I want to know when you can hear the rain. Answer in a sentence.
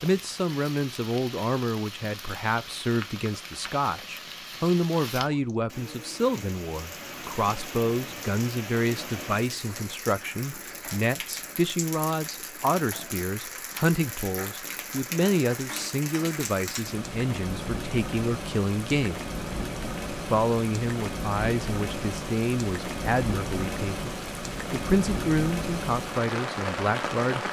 The rain can be heard from 0.0 to 27.4 s.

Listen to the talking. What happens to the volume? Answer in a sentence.
The loudness of the talking stays about the same.